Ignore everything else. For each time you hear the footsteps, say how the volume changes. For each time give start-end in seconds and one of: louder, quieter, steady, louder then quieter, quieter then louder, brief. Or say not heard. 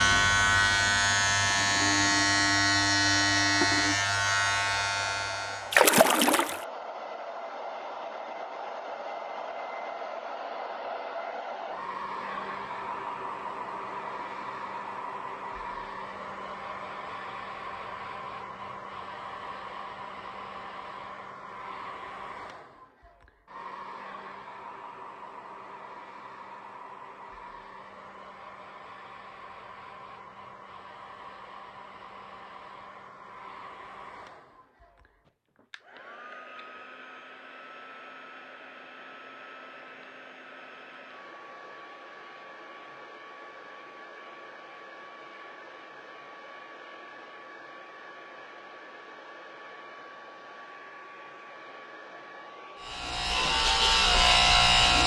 not heard.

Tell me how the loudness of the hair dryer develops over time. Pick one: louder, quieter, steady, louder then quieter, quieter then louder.
quieter.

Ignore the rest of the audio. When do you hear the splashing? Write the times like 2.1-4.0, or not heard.
5.7-6.7.